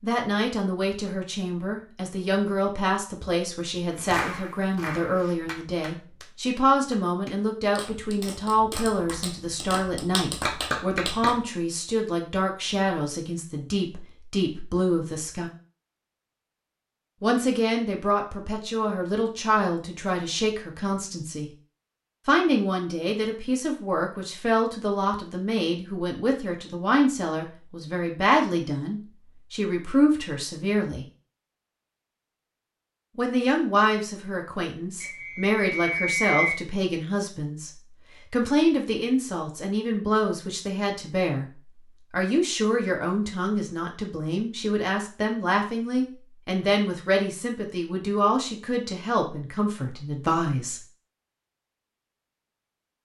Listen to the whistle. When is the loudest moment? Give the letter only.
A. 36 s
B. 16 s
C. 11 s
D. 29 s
A.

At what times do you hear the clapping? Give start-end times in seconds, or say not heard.
4.0-11.4.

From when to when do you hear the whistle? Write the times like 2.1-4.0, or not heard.
35.0-36.6.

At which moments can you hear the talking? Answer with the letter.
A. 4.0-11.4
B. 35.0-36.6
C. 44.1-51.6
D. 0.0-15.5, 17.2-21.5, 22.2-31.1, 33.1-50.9
D.